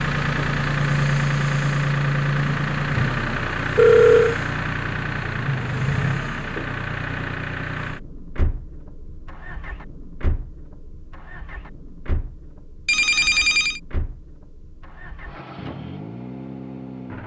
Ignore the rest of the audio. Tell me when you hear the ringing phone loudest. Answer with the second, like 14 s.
4 s.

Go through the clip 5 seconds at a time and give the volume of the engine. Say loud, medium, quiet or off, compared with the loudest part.
loud, medium, quiet, quiet.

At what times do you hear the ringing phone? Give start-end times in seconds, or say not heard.
3.8-4.3, 12.8-13.8.